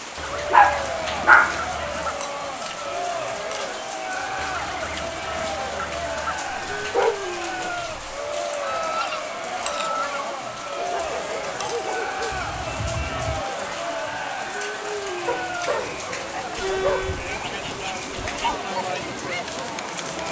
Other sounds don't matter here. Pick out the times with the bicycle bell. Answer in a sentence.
You can't hear the bicycle bell here.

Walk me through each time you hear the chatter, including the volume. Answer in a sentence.
The chatter can be heard from 0.1 to 20.2 s, at a steady volume.